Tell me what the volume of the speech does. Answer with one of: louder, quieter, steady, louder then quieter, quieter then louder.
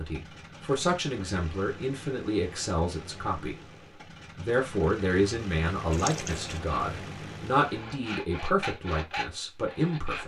steady.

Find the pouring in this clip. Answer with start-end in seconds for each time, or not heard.
5.9-6.6.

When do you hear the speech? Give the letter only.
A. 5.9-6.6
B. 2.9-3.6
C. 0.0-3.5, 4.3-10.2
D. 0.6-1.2
C.